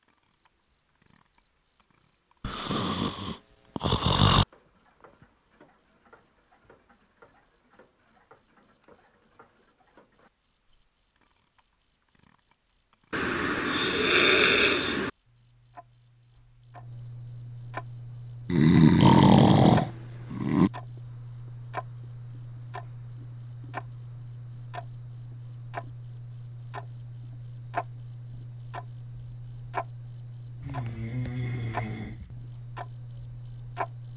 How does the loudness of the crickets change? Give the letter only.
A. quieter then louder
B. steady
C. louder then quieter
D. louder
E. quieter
D.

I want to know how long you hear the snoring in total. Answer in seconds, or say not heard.
8 s.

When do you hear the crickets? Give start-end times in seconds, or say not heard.
0.0-34.1.